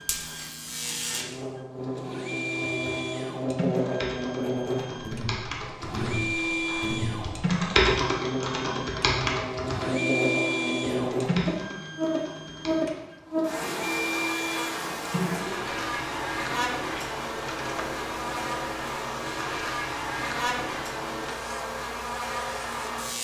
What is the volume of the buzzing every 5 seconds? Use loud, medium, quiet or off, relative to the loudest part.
loud, medium, loud, loud, loud.